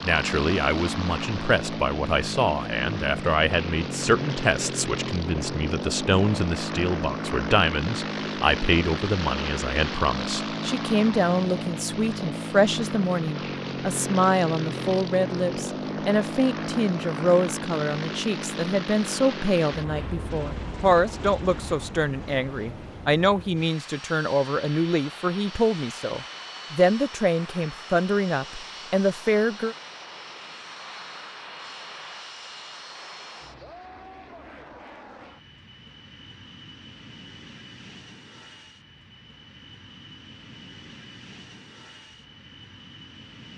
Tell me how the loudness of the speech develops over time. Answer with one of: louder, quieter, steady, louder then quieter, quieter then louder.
steady.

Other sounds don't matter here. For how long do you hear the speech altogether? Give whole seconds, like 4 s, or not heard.
30 s.